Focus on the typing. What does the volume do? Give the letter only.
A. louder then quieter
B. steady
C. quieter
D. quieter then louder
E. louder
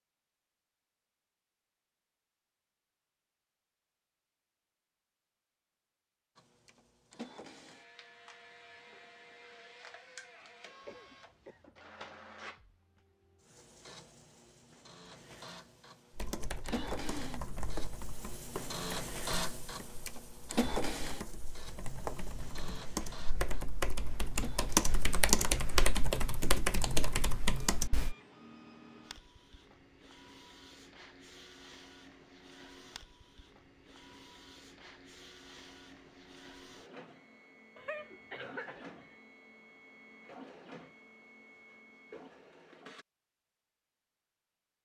D.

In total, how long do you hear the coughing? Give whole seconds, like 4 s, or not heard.
3 s.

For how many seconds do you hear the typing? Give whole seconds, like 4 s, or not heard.
12 s.